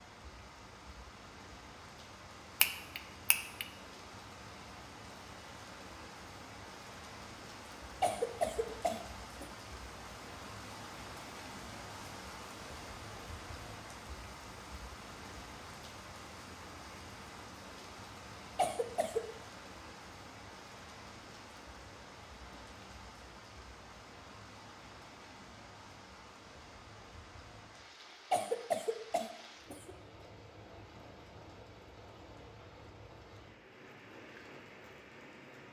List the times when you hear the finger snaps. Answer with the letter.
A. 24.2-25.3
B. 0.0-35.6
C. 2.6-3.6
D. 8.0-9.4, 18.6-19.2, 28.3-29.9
C.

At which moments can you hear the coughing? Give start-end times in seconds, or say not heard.
8.0-9.4, 18.6-19.2, 28.3-29.9.